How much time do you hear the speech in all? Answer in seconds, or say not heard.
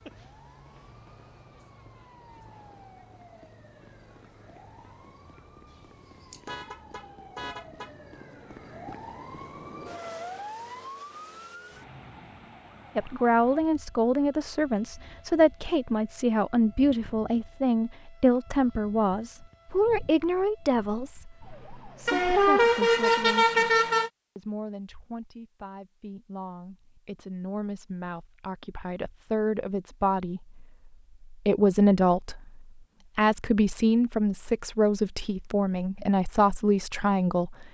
25 s.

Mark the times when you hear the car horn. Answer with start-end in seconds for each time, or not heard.
5.7-8.0, 22.1-24.1.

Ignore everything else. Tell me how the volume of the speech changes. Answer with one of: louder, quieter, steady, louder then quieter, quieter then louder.
quieter then louder.